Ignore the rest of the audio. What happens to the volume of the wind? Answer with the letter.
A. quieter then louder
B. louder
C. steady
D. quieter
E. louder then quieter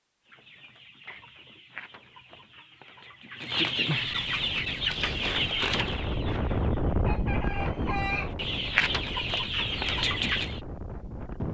E.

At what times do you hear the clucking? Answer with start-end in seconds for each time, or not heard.
0.2-10.6.